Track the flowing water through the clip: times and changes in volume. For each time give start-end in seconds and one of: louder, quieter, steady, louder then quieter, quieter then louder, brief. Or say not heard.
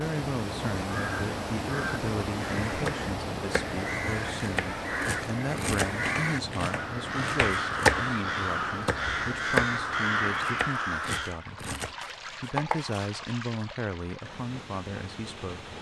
0.0-15.7 quieter.